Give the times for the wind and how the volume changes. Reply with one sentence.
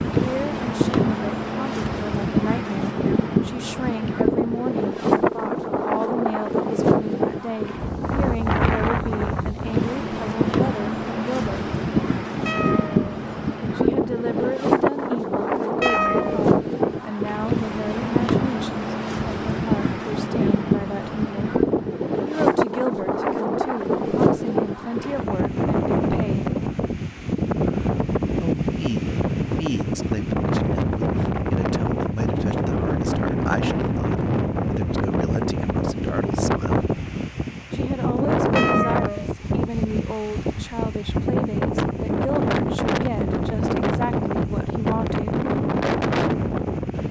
You can hear the wind from 0.0 to 47.0 s, at a steady volume.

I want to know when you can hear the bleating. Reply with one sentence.
You can't hear the bleating here.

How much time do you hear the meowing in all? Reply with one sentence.
The meowing can be heard for 2 seconds in total.